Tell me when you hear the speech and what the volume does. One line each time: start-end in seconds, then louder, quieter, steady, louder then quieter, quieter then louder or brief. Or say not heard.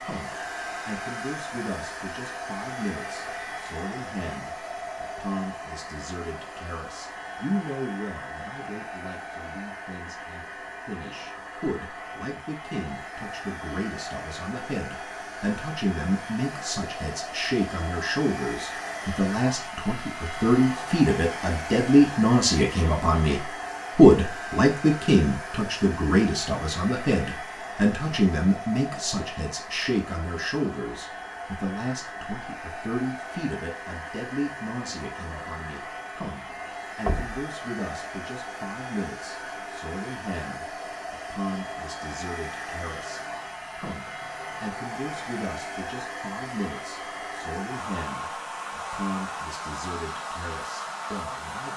0.0-51.7 louder then quieter.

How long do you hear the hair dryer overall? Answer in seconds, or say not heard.
52 s.